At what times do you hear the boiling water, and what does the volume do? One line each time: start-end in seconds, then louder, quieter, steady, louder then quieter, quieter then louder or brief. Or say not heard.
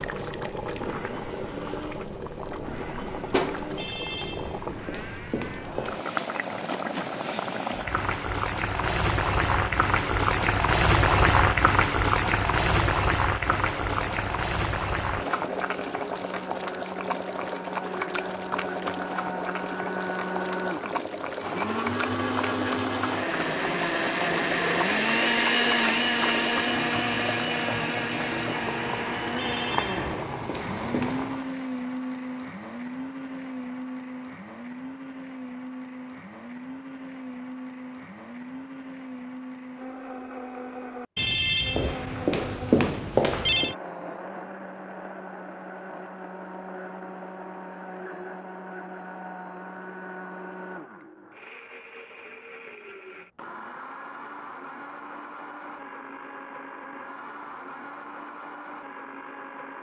0.0-31.5 louder then quieter.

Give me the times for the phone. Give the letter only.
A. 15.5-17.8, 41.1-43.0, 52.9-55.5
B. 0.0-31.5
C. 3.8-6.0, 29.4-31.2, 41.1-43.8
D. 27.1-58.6
C.